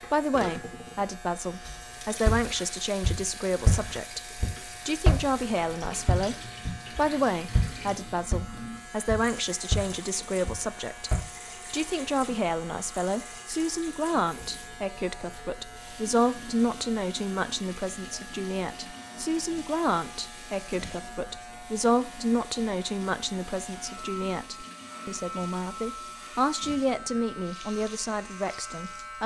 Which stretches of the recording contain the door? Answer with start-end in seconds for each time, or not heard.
not heard.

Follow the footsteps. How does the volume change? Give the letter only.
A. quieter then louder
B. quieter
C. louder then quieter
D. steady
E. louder
B.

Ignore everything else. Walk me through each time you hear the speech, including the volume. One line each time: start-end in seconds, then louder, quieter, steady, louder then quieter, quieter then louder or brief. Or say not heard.
0.1-29.2 steady.